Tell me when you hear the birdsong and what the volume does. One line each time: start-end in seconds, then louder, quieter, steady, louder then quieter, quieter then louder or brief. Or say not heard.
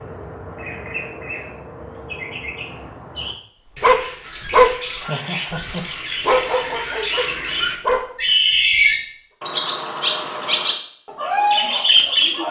0.0-12.4 louder.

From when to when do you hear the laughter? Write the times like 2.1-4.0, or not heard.
5.0-5.8.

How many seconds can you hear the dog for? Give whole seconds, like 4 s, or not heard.
4 s.